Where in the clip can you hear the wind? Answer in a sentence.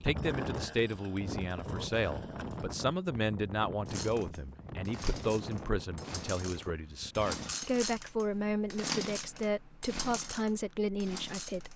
You can hear the wind from 0.0 to 7.3 s.